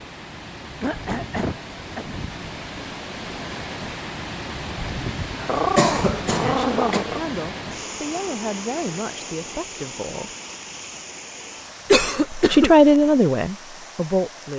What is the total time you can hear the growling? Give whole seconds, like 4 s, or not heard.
2 s.